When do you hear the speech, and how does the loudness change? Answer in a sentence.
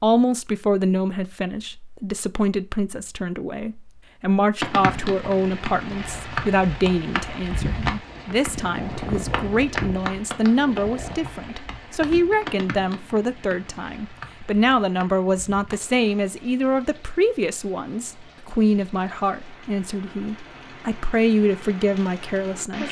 You can hear the speech from 0.0 to 22.8 s, at a steady volume.